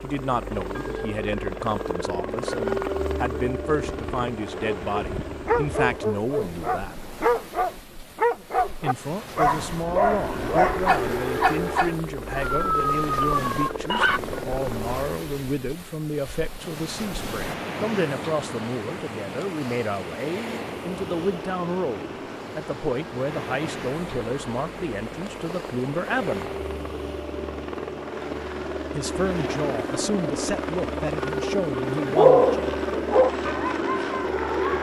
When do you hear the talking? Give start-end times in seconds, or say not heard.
0.0-7.0, 8.8-26.5, 28.9-32.7.